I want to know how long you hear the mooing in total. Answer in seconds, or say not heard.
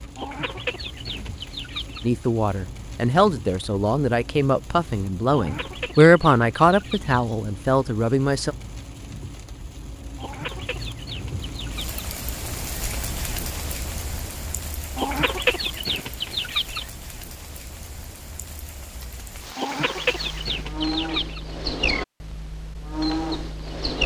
4 s.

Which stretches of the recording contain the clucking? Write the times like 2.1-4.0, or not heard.
0.1-2.1, 5.3-7.2, 10.2-12.0, 14.9-16.9, 19.6-21.4.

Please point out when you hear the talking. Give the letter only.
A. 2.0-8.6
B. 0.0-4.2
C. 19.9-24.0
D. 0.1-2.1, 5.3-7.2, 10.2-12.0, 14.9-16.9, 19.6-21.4
A.